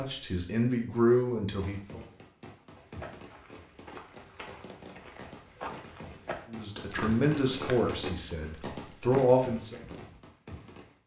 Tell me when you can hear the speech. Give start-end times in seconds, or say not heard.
0.0-2.0, 6.5-9.8.